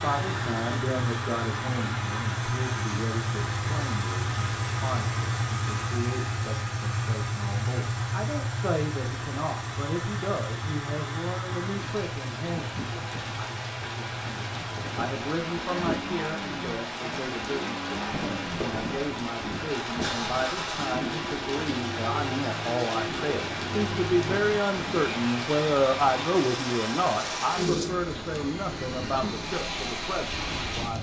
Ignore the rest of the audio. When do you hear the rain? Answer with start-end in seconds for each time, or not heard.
0.0-30.9.